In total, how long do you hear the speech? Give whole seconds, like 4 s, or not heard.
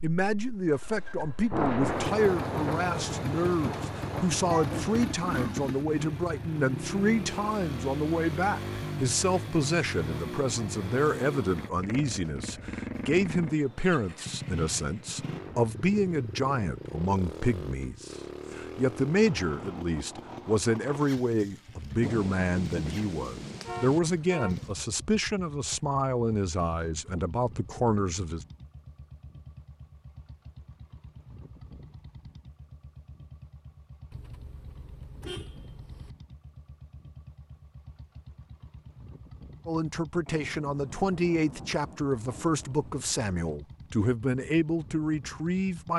35 s.